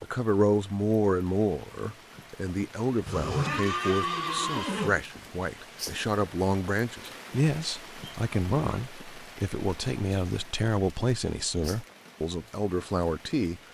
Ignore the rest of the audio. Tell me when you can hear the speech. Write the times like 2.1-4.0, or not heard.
0.0-13.6.